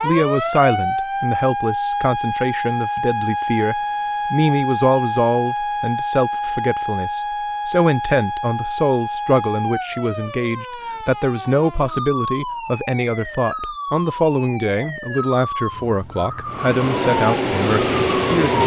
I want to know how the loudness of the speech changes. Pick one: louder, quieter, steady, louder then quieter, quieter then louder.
steady.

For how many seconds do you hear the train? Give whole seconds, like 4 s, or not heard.
2 s.